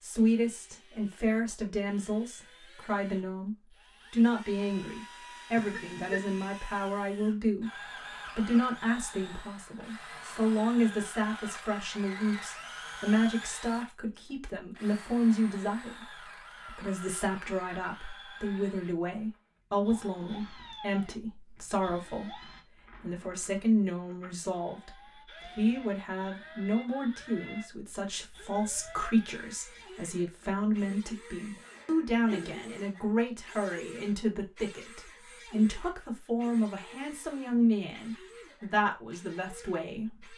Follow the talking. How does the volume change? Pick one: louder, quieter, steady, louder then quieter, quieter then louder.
steady.